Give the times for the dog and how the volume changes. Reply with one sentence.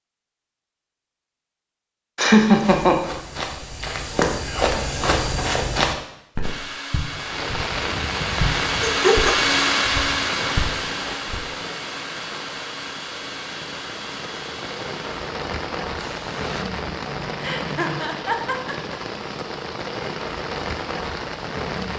The dog can't be heard in this clip.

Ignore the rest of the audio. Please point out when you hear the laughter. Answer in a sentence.
You can hear the laughter from 2.1 to 3.0 s, from 8.8 to 9.3 s and from 17.4 to 18.9 s.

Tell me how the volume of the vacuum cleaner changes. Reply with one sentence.
The volume of the vacuum cleaner goes up, then down.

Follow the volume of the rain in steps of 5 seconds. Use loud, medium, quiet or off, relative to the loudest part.
off, loud, medium, loud, loud.